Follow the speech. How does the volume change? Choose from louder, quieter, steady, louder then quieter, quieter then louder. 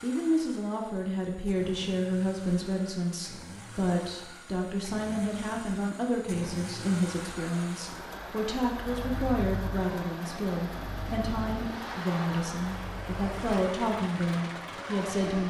steady.